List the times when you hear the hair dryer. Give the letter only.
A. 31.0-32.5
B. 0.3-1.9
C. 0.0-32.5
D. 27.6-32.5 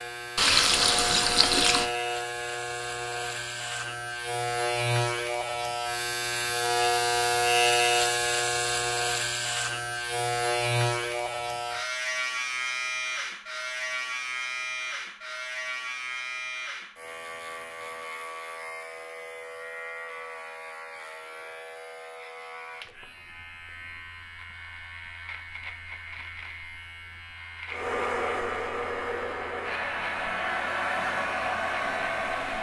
D.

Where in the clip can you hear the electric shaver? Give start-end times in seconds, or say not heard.
0.0-32.5.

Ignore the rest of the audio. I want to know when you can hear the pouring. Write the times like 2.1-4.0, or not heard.
0.3-1.9.